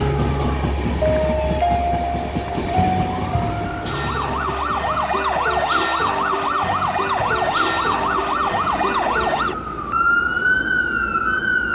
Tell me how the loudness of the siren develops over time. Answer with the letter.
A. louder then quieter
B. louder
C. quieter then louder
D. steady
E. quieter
B.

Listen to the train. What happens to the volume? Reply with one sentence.
The volume of the train goes down.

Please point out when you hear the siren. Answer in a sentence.
The siren can be heard from 0.0 to 11.7 s.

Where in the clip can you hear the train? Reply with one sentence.
You can hear the train from 0.0 to 11.7 s.